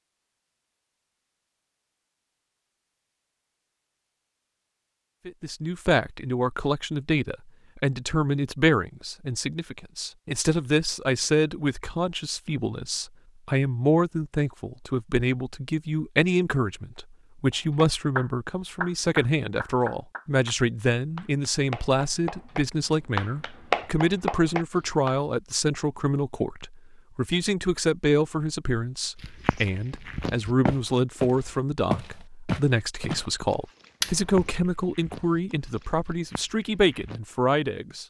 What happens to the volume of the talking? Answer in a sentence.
The volume of the talking stays about the same.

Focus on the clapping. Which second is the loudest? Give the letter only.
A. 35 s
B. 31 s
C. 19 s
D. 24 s
D.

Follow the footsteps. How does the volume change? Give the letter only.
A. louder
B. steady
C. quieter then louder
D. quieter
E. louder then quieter
E.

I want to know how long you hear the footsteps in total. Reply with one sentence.
You can hear the footsteps for 8 seconds altogether.